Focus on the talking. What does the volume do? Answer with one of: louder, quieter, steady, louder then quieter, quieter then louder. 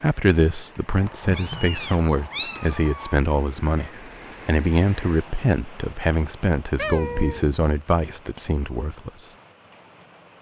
steady.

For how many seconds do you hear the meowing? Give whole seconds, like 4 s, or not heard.
3 s.